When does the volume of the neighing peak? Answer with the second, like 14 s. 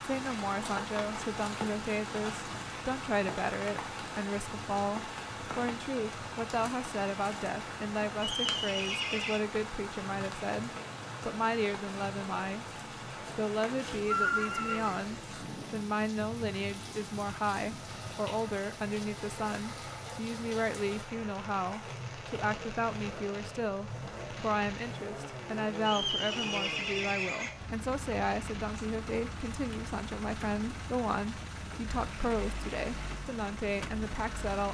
14 s.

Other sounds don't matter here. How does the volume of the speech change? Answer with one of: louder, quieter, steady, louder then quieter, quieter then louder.
steady.